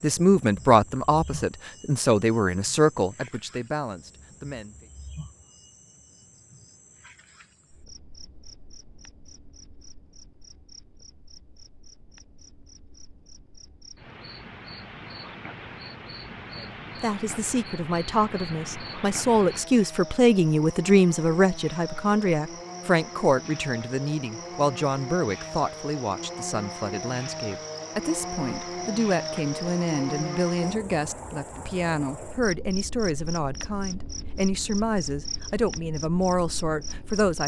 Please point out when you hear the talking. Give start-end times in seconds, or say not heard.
0.0-4.8, 16.6-37.4.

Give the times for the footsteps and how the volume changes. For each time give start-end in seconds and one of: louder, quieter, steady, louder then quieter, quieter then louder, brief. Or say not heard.
not heard.